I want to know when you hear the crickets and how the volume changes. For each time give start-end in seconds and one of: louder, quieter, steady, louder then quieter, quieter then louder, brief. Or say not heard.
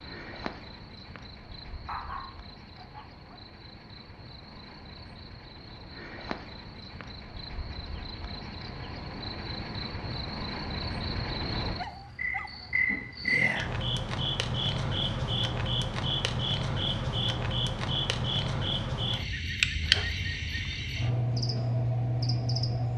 0.0-22.9 louder.